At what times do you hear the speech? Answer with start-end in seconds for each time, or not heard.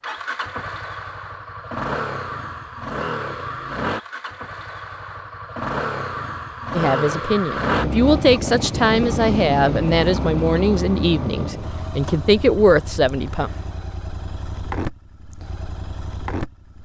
6.8-13.5.